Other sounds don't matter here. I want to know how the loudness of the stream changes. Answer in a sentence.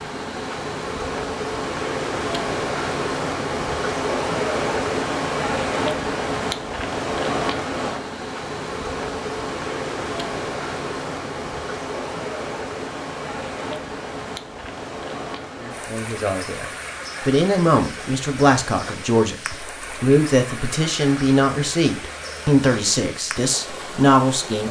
The volume of the stream goes down.